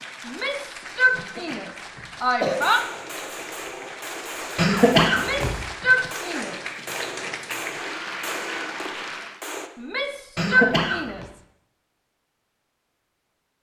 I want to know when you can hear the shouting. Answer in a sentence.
You can hear the shouting from 0.2 to 2.8 s, from 5.1 to 6.7 s and from 9.8 to 11.4 s.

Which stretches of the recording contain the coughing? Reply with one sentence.
You can hear the coughing from 1.1 to 2.6 s, from 4.5 to 5.6 s and from 10.3 to 11.2 s.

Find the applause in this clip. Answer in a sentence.
The applause can be heard from 0.0 to 9.4 s.